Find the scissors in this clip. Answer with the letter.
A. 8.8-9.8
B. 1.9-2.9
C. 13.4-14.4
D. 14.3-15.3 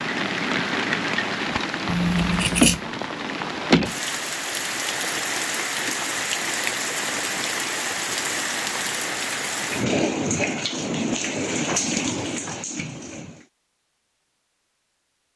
B.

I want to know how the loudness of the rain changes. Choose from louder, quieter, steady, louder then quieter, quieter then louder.
steady.